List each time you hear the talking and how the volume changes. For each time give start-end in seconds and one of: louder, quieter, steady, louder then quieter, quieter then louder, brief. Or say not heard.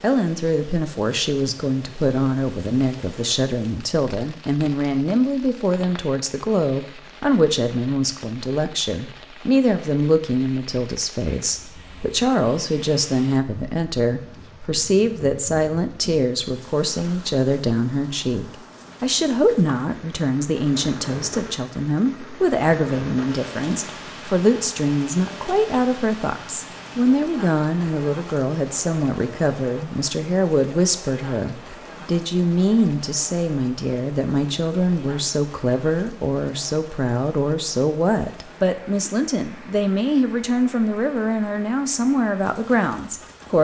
0.0-43.5 steady.